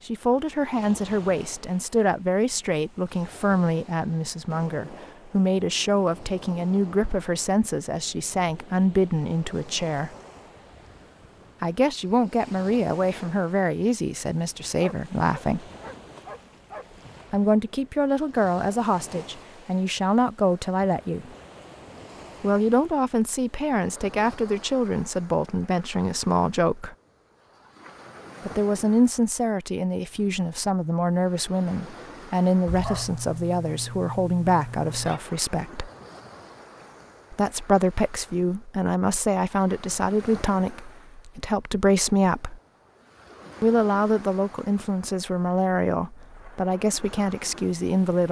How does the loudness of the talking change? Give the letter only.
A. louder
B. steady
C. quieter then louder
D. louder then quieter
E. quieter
B.